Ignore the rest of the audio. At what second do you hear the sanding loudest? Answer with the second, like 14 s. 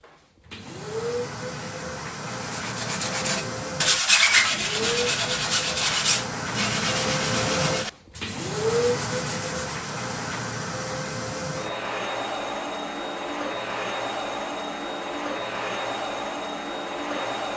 4 s.